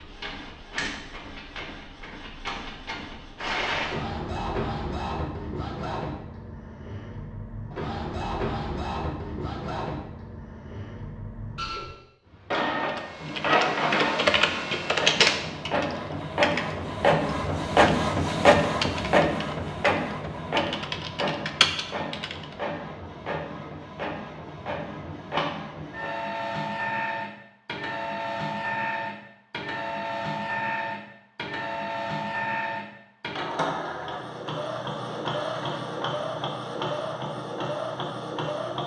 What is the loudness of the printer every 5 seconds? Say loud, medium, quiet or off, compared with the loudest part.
medium, medium, medium, loud, medium, medium, medium, medium.